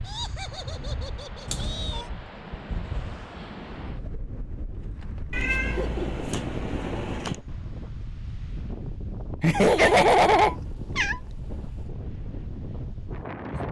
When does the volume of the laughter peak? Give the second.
10 s.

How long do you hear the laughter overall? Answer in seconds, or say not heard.
4 s.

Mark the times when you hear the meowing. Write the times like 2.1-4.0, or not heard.
1.4-2.1, 5.3-7.4, 9.6-11.8.